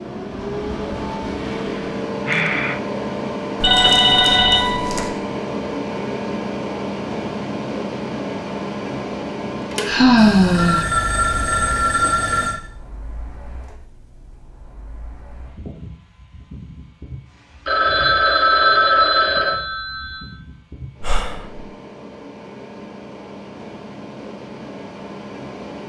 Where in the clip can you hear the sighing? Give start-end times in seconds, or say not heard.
1.4-2.8, 9.8-10.9, 21.0-21.6.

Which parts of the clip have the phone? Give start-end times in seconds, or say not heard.
3.6-5.1, 10.2-12.6, 17.6-20.3.